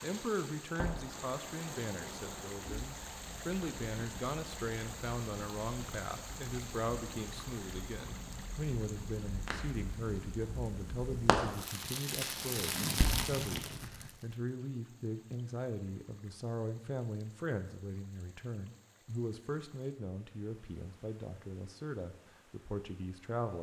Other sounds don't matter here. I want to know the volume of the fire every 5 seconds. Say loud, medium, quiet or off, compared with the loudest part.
medium, medium, loud, off, off.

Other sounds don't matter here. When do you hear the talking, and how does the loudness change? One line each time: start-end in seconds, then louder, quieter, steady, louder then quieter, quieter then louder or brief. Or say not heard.
0.0-23.5 steady.